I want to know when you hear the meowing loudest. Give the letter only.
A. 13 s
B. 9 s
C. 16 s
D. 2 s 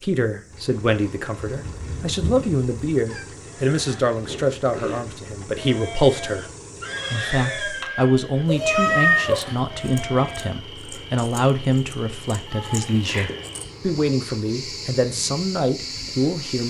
B.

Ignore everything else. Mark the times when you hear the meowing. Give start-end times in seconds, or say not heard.
1.4-3.2, 8.4-9.4, 12.4-13.2.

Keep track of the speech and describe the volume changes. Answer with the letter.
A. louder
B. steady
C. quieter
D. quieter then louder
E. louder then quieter
B.